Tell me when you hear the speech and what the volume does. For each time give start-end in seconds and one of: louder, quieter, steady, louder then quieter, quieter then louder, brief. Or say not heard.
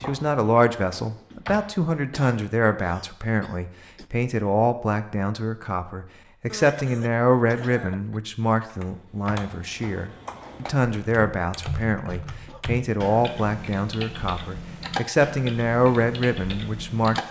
0.0-17.2 steady.